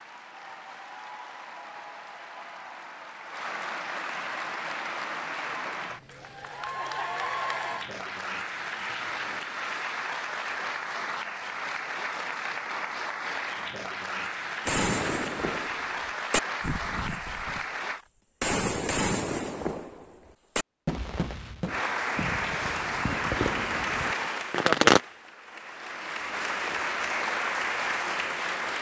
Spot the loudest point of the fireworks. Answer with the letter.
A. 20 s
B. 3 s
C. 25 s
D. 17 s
C.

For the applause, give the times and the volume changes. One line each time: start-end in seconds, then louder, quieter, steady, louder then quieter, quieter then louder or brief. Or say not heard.
0.0-18.0 louder
21.6-28.7 quieter then louder.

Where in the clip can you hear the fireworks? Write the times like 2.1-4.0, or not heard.
14.7-17.6, 18.4-25.0.